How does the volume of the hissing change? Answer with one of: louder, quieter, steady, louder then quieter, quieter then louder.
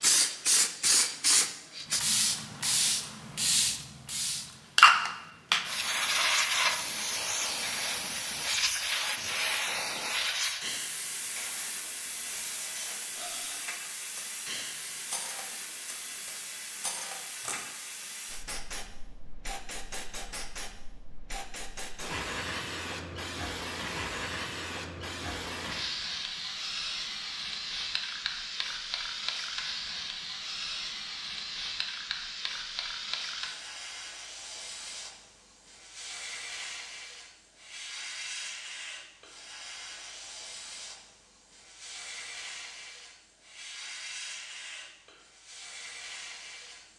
quieter.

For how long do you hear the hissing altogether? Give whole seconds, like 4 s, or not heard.
47 s.